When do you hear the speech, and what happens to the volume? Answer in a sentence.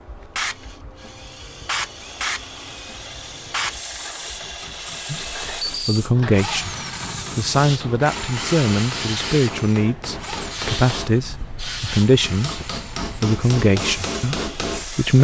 The speech can be heard briefly from 5.1 to 6.8 s; and from 7.3 to 15.1 s, at a steady volume.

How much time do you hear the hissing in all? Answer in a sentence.
You can hear the hissing for 15 seconds altogether.